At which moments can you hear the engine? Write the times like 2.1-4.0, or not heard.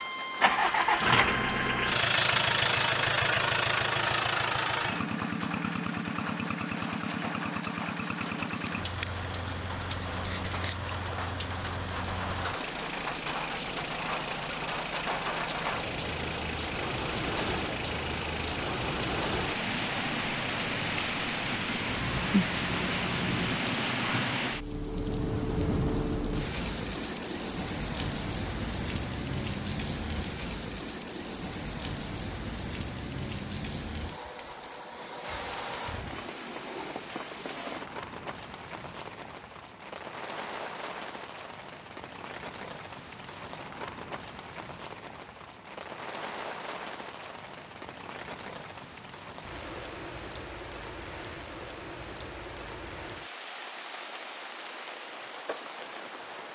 0.0-23.6.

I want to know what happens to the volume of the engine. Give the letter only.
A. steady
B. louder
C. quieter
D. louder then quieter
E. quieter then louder
C.